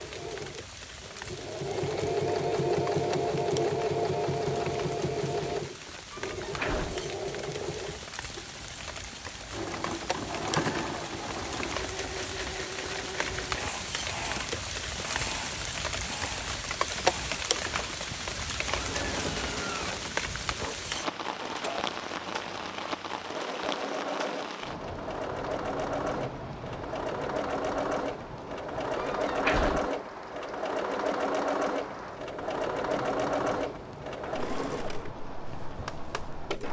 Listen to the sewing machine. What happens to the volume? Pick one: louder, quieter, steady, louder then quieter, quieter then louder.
quieter then louder.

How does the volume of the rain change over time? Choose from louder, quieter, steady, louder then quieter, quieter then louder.
louder then quieter.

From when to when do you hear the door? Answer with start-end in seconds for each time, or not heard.
6.3-7.0, 28.9-29.9.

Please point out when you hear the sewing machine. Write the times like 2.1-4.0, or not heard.
0.0-36.6.